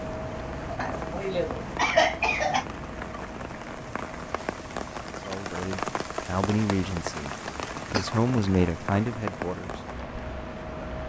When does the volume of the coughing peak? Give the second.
2 s.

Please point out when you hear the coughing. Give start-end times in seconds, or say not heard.
0.7-2.6, 7.5-8.1.